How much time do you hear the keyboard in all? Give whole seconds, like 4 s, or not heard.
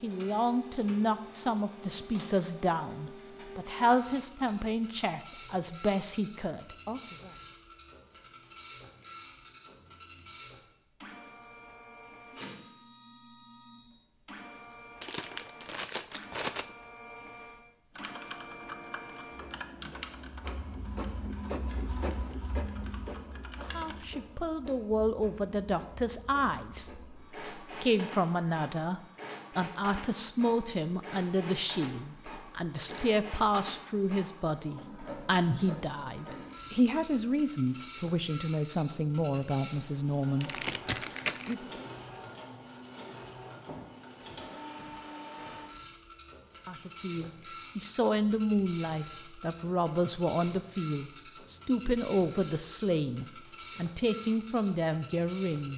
6 s.